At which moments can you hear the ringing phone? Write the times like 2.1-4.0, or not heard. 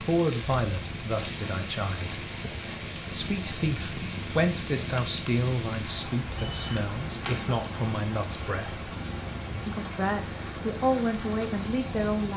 6.3-7.5.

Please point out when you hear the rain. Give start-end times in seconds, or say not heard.
0.0-12.3.